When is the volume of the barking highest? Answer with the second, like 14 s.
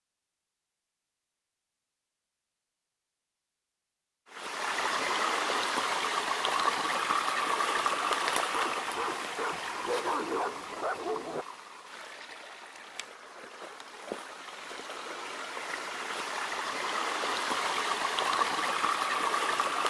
10 s.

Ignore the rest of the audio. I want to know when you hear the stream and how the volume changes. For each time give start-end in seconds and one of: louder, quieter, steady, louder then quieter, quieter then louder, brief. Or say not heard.
4.3-19.8 quieter then louder.